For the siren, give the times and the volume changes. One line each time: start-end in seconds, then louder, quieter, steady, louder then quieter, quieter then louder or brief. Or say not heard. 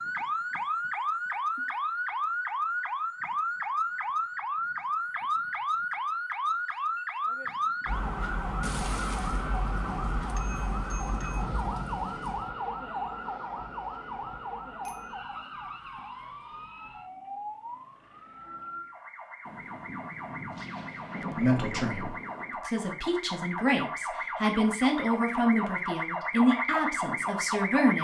0.0-28.0 quieter then louder.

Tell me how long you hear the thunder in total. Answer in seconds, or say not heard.
7 s.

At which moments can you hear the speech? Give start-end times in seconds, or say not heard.
21.4-28.0.